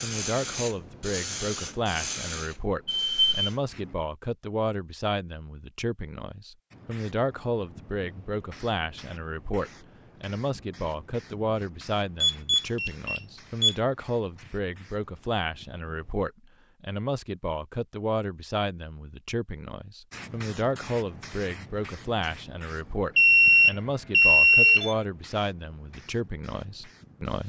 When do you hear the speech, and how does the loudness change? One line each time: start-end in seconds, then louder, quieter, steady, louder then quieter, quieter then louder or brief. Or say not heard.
0.0-27.4 steady.